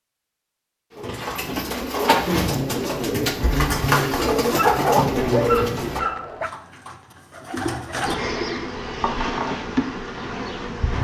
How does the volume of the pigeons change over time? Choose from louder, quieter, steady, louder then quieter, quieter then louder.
quieter.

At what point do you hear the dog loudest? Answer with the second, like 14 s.
5 s.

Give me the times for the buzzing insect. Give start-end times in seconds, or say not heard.
2.5-6.0, 8.0-10.9.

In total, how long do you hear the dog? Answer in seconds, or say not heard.
2 s.